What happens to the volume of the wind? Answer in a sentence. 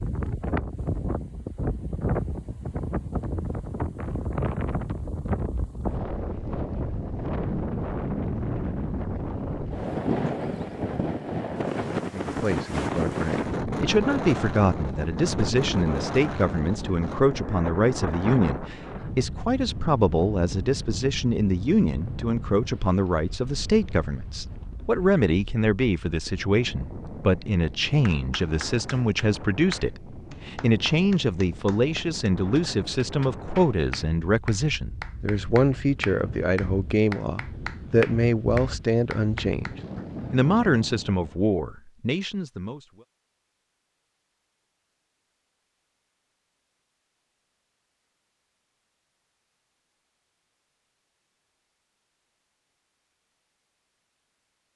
The loudness of the wind goes down.